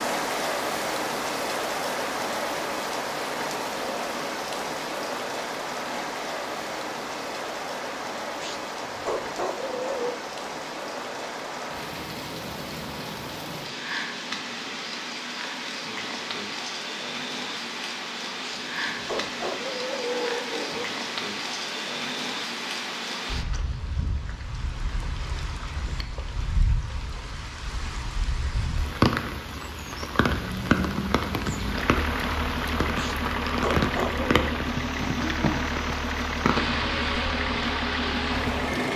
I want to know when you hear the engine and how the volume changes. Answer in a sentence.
The engine can be heard from 30.3 to 38.9 s, at a steady volume.